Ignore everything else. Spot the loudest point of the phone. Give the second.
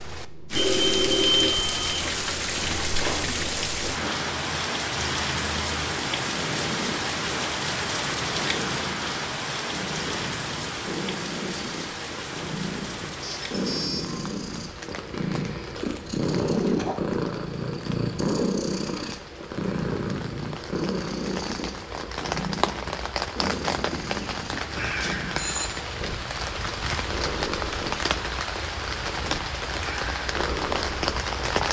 1 s.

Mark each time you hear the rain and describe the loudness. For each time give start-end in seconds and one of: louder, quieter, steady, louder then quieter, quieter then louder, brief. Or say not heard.
0.0-31.6 quieter then louder.